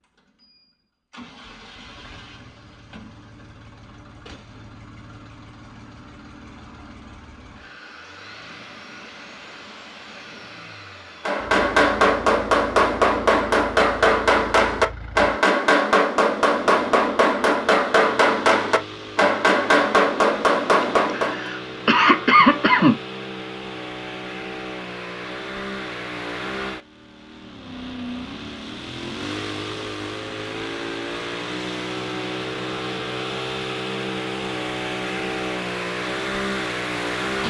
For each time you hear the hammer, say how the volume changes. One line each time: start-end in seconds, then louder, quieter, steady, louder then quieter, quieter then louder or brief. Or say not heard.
11.2-21.5 steady.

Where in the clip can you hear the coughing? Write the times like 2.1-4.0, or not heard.
20.8-23.0.